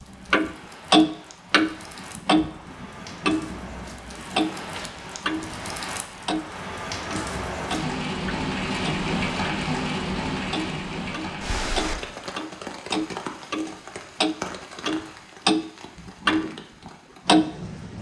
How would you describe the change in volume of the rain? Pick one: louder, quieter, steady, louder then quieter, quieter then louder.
louder then quieter.